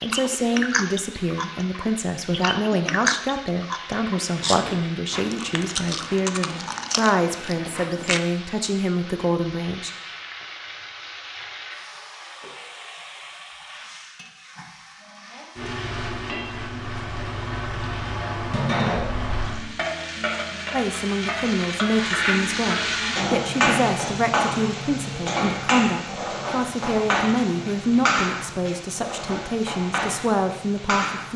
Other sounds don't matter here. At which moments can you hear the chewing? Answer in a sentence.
The chewing can be heard from 0.0 to 8.2 s.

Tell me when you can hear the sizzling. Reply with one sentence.
You can hear the sizzling from 0.0 to 31.3 s.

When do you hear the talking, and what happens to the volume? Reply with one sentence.
You can hear the talking from 0.0 to 9.9 s, at a steady volume; and from 20.7 to 31.3 s, at a steady volume.